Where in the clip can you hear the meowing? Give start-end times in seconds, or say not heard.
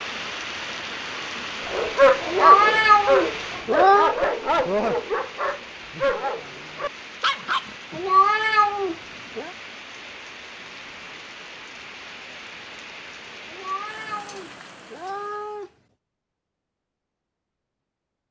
2.2-4.2, 8.0-9.5, 13.5-15.7.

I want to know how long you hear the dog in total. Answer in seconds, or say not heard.
6 s.